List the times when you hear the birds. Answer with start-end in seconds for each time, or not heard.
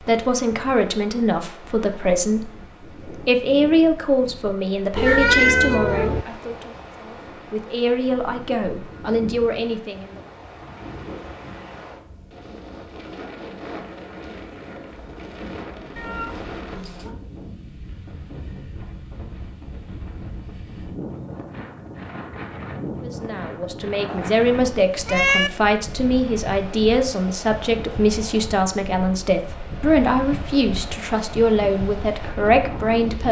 not heard.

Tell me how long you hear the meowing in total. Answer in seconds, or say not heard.
4 s.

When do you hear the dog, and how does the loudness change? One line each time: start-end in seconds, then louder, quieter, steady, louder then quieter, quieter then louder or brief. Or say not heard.
not heard.